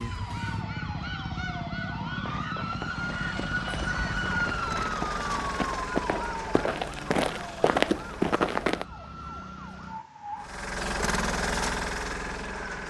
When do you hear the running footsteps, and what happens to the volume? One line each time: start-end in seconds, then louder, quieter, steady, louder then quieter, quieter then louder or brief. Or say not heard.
2.2-8.8 louder.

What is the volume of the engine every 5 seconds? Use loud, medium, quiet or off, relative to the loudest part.
medium, medium, loud.